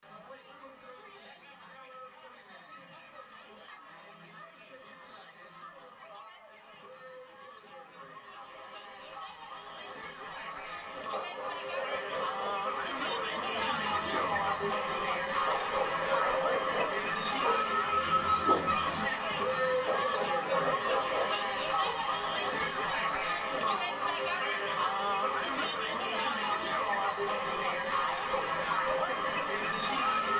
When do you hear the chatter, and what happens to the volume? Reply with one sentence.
The chatter can be heard from 0.0 to 30.3 s, getting louder.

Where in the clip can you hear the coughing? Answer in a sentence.
You can't hear the coughing here.